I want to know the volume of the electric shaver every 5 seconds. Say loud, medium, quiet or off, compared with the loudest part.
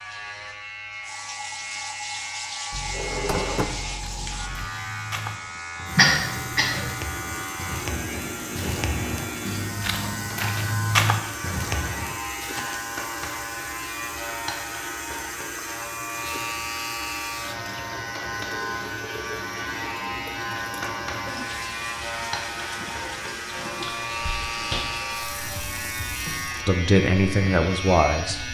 medium, loud, loud, loud, loud, loud.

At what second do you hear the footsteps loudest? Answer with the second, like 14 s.
11 s.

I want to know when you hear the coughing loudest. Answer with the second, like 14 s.
6 s.